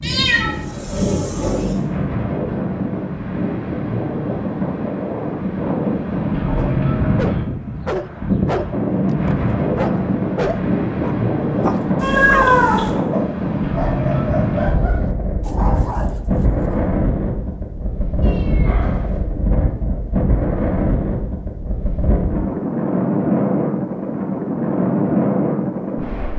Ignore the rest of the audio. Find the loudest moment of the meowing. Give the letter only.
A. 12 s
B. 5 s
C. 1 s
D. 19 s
A.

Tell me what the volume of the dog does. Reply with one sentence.
The volume of the dog goes down.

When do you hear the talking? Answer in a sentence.
The talking can't be heard in this clip.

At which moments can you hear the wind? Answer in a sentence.
You can hear the wind from 0.0 to 26.3 s.